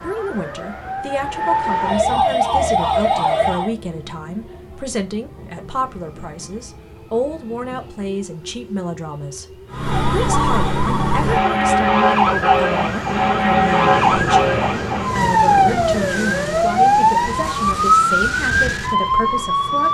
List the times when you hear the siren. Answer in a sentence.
You can hear the siren from 0.0 to 3.8 s and from 9.7 to 19.8 s.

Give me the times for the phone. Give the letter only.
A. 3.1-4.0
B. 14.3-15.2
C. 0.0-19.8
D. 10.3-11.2
D.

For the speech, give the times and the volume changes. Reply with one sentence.
The speech can be heard from 0.0 to 19.8 s, at a steady volume.